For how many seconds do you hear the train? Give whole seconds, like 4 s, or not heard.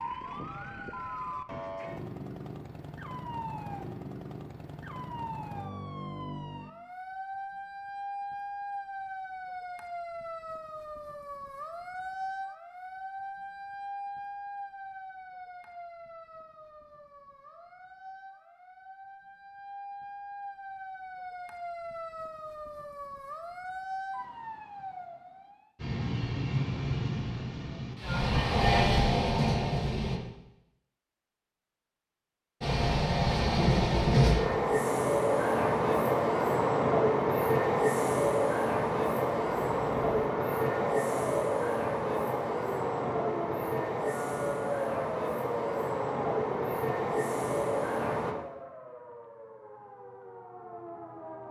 20 s.